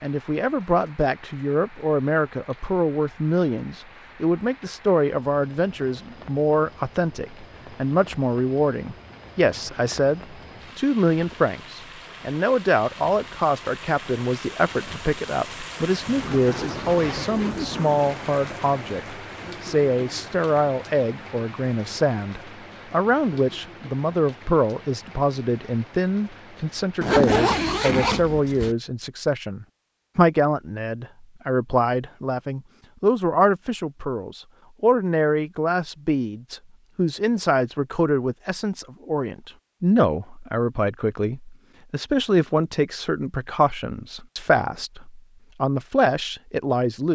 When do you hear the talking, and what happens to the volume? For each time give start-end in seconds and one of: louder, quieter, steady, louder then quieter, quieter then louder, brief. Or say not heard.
0.0-47.0 steady.